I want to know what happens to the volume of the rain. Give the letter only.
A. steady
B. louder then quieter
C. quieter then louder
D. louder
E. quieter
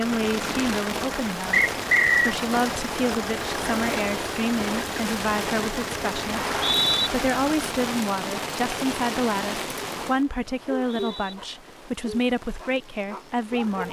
E.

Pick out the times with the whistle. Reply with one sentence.
The whistle can be heard from 1.5 to 2.4 s, from 6.3 to 7.1 s and from 10.6 to 11.3 s.